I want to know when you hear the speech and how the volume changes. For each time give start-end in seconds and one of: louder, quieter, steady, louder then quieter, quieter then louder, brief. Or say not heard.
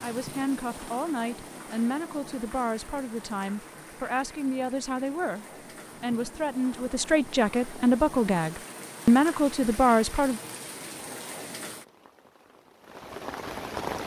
0.0-10.4 louder.